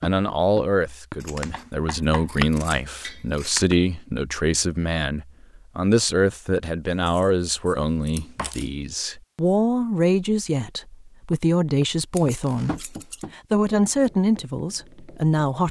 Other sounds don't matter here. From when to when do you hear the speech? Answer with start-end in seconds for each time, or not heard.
0.0-15.6.